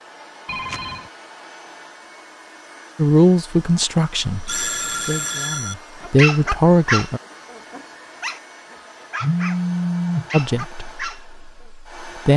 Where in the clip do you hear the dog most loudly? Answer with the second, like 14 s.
6 s.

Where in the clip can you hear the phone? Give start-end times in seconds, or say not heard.
0.5-1.1, 4.5-5.8, 9.2-10.2.